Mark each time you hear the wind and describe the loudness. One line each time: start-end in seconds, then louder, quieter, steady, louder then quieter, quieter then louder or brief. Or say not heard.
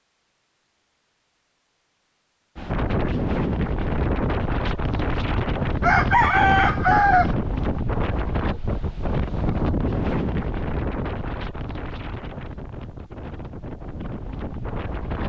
2.5-15.2 quieter.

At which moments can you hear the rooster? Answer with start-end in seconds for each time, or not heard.
5.8-7.3.